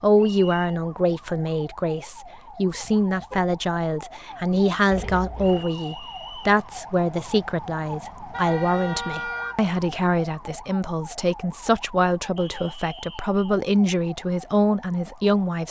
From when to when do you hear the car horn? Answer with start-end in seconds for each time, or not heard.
2.7-3.5, 8.3-9.8.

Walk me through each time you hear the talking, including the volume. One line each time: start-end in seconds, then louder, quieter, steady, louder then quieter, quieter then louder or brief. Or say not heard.
0.0-15.6 steady.